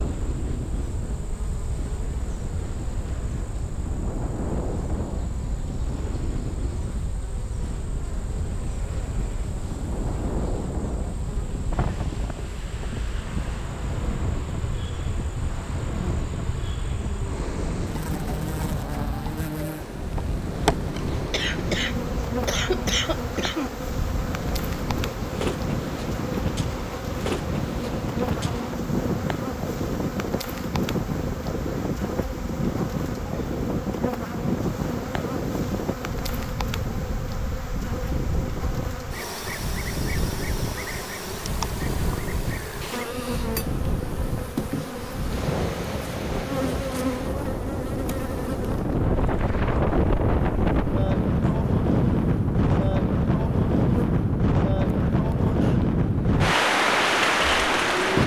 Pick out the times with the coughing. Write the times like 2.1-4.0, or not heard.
20.9-23.8.